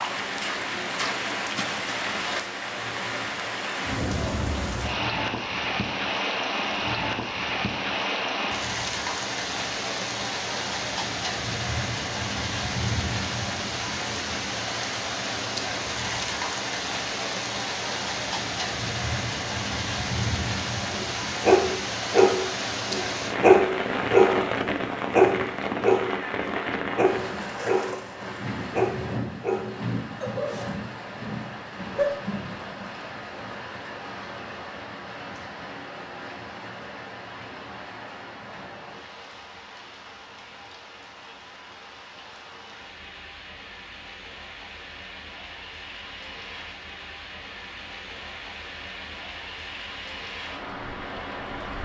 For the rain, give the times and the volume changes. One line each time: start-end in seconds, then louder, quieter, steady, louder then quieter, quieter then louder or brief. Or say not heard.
0.0-51.7 quieter.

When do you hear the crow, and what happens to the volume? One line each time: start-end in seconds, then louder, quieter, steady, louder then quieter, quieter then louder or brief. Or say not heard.
not heard.